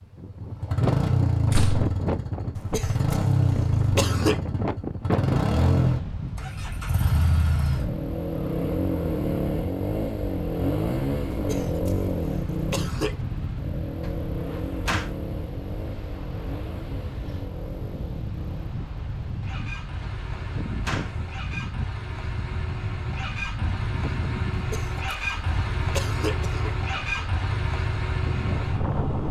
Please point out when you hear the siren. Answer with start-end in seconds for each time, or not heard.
not heard.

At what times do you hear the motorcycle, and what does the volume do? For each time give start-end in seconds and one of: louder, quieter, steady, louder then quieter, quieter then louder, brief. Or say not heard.
0.0-29.2 quieter then louder.